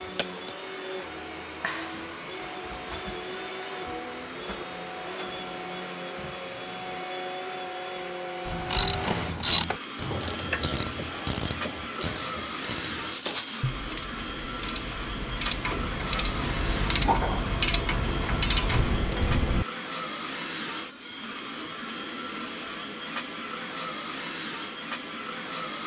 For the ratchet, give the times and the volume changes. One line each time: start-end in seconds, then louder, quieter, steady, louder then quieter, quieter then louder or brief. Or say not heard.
8.4-19.6 quieter then louder.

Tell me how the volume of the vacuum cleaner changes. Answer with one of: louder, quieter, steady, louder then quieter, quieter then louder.
steady.